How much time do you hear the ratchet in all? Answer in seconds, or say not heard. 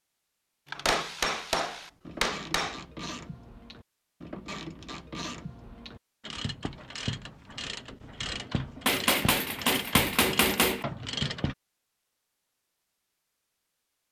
11 s.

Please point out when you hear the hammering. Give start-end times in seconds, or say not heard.
0.8-2.8, 8.8-10.8.